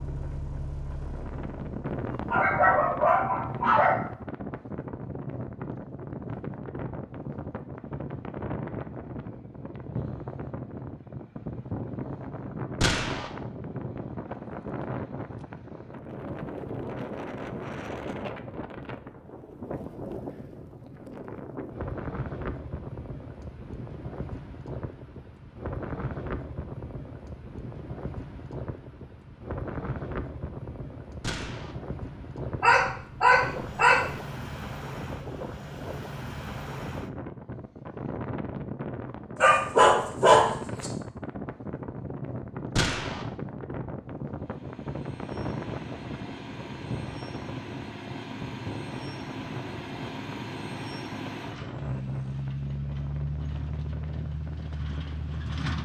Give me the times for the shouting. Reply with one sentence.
The shouting can't be heard in this clip.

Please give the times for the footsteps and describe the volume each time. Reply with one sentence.
The footsteps can't be heard in this clip.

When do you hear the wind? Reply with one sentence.
The wind can be heard from 0.0 to 55.8 s.